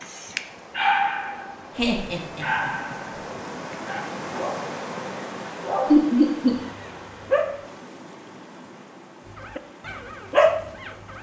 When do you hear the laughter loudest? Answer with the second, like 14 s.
6 s.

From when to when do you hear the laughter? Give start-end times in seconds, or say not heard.
1.8-3.0, 5.9-6.5.